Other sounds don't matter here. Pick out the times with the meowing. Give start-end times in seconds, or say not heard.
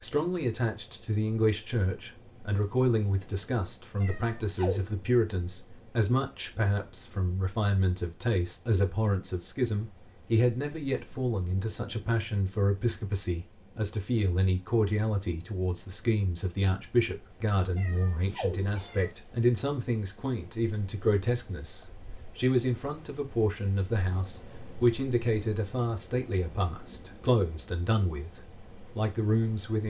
4.0-4.9, 17.8-19.1.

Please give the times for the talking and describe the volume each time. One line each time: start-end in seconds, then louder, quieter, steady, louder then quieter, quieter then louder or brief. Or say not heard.
0.0-29.8 steady.